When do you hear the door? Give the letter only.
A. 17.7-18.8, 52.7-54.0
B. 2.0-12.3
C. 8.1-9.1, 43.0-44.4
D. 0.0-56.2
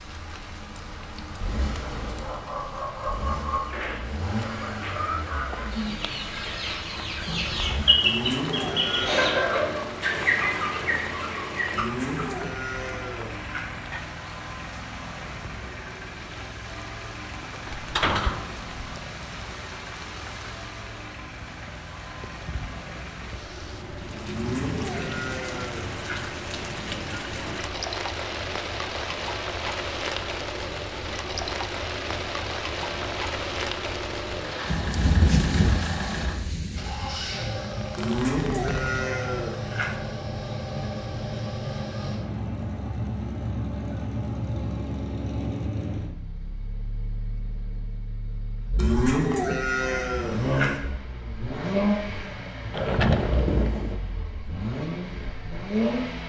A.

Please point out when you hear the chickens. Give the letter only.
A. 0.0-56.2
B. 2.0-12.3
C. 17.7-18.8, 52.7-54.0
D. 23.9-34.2
B.